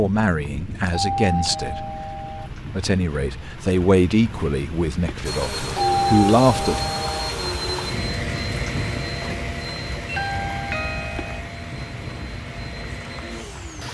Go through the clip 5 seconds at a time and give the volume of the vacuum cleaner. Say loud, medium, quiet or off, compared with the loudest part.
off, loud, medium.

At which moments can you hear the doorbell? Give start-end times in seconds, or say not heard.
0.8-2.5, 5.7-7.3, 10.1-11.4.